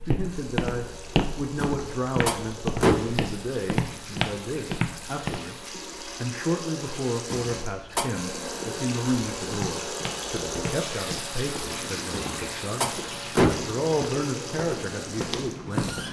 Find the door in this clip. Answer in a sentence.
You can hear the door from 1.6 to 3.2 s, from 7.3 to 8.2 s and from 12.1 to 13.8 s.